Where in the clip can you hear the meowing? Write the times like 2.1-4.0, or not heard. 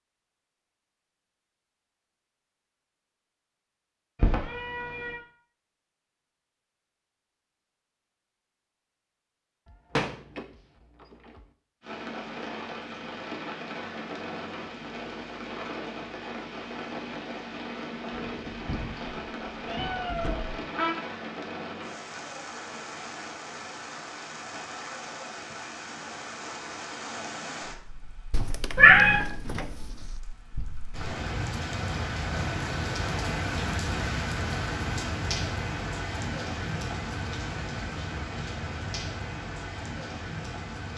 4.2-5.2, 19.6-20.9, 28.8-29.2.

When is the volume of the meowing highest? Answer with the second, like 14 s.
29 s.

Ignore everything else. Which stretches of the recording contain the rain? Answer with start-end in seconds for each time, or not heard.
11.8-40.9.